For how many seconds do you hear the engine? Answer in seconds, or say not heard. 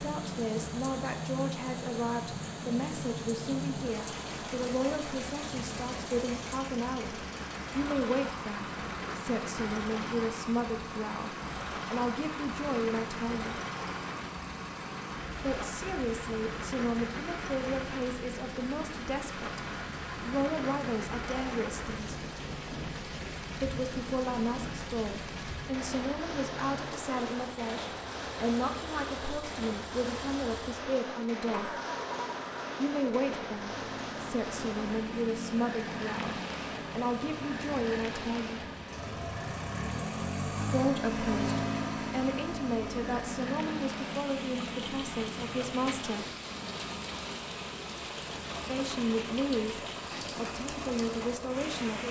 52 s.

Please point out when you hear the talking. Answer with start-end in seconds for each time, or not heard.
0.0-13.6, 15.4-22.2, 23.6-31.8, 32.8-38.6, 40.6-46.2, 48.6-52.0.